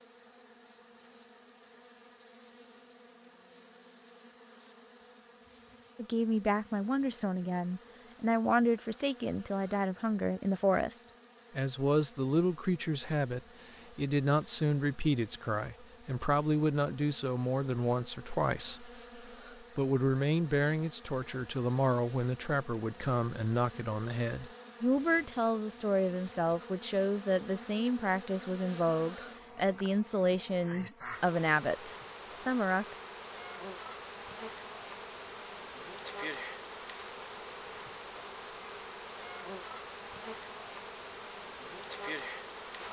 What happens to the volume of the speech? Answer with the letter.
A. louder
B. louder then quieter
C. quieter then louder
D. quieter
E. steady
E.